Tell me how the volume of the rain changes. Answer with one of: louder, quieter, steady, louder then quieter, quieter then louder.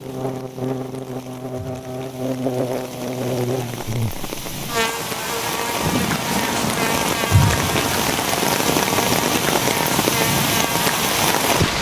louder.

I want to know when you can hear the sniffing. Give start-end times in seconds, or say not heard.
not heard.